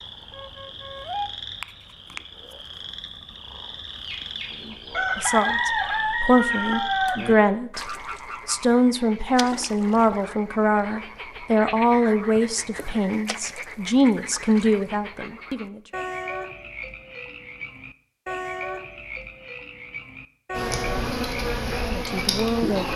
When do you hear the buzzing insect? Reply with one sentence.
You can hear the buzzing insect from 20.5 to 22.9 s.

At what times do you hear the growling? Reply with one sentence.
The growling can't be heard in this clip.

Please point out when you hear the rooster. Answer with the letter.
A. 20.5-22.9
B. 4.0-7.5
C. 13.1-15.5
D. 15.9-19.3
B.